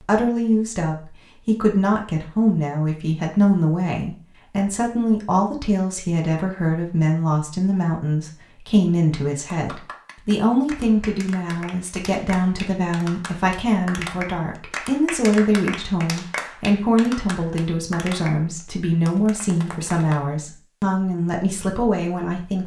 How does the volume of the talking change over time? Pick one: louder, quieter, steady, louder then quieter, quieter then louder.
steady.